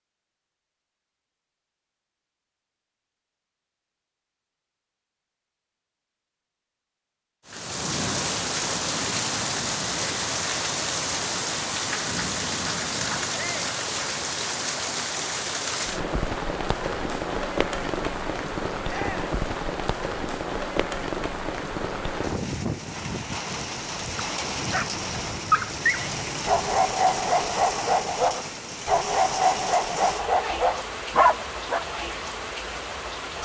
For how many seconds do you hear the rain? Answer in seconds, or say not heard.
26 s.